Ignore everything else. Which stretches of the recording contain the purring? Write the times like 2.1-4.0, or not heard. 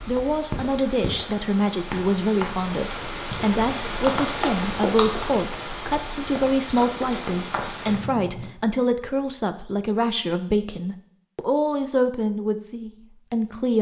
not heard.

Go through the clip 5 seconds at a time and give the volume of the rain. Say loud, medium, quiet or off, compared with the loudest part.
loud, loud, off.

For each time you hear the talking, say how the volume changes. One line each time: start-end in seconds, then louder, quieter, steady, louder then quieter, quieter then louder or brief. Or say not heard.
0.0-13.7 steady.